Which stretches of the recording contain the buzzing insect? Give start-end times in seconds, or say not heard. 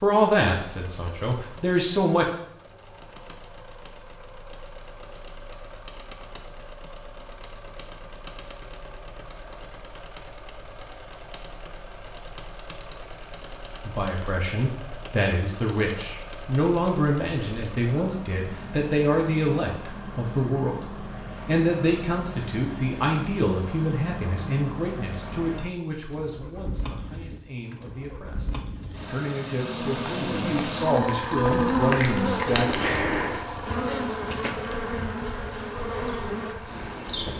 29.6-37.3.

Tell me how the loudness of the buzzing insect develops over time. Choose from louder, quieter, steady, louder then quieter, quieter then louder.
louder then quieter.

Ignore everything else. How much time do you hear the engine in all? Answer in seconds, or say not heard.
37 s.